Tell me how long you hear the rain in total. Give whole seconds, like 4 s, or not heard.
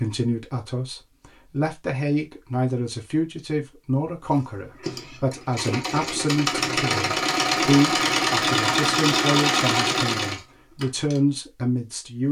not heard.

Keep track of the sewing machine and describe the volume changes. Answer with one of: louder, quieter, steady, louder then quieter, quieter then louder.
louder.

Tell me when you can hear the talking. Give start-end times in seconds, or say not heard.
0.0-12.2.